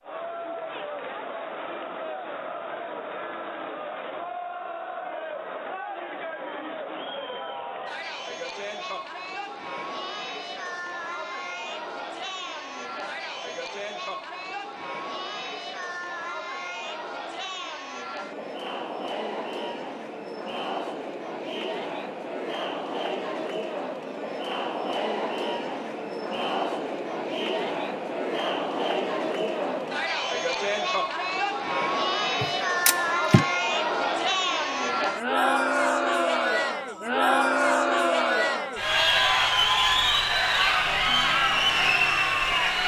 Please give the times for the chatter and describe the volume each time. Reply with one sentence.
You can hear the chatter from 0.0 to 42.8 s, getting louder.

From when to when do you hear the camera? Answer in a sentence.
You can hear the camera from 32.4 to 33.5 s.